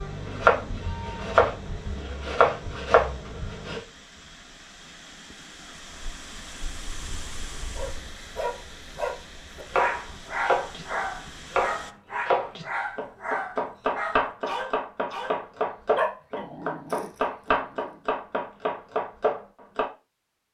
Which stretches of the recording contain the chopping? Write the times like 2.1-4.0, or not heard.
0.0-3.8, 9.7-19.9.